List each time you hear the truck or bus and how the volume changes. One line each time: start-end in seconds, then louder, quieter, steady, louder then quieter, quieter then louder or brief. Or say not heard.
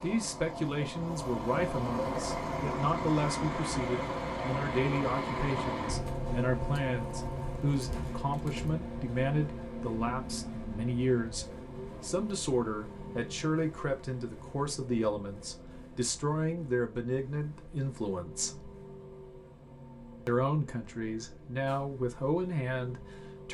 0.0-23.4 quieter.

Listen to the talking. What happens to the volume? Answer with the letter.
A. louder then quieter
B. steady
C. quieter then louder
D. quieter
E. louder
B.